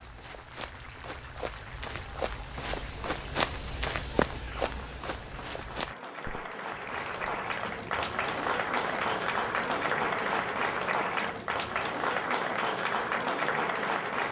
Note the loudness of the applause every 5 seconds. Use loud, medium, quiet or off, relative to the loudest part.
quiet, loud, loud.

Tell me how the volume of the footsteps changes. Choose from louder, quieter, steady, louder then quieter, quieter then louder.
louder then quieter.